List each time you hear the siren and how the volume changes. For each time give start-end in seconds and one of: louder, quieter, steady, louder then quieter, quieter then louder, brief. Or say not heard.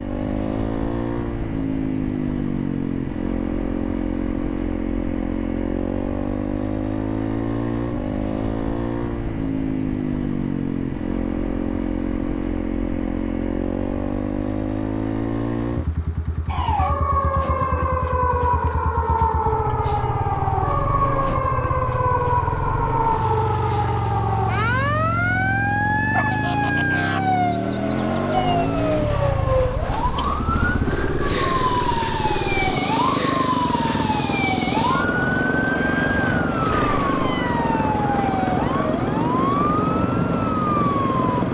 16.4-41.4 steady.